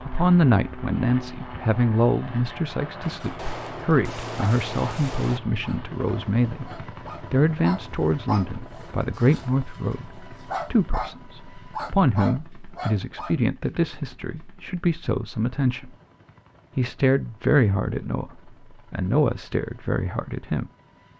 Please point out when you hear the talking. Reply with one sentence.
The talking can be heard from 0.0 to 15.9 s and from 16.8 to 20.7 s.